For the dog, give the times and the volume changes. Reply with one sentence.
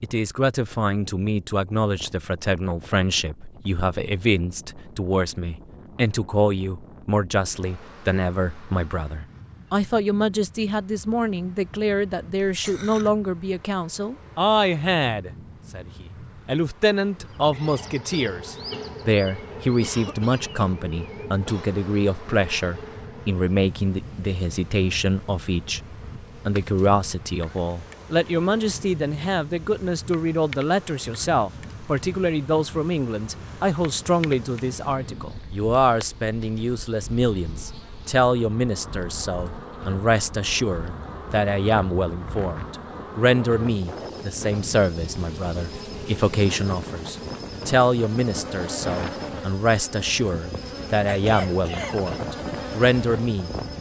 You can't hear the dog here.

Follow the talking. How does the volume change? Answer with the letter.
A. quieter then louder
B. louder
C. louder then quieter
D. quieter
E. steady
E.